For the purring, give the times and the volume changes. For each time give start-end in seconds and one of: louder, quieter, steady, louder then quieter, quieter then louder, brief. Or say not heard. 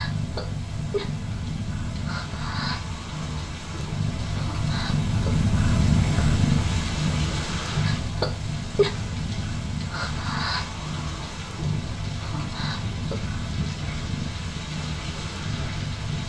0.0-16.2 louder then quieter.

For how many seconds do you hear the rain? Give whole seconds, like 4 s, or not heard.
16 s.